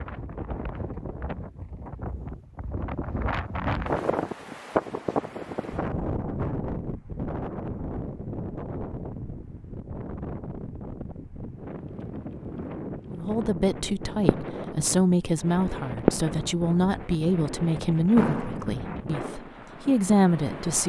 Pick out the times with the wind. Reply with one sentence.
You can hear the wind from 0.0 to 20.8 s.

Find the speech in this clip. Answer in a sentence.
The speech can be heard from 13.1 to 20.8 s.